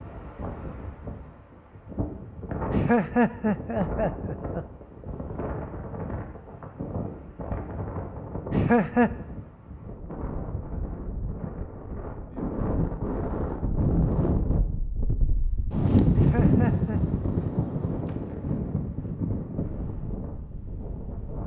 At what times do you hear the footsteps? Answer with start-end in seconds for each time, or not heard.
not heard.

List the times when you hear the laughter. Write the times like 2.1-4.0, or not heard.
2.7-4.7, 8.5-9.1, 16.1-17.0.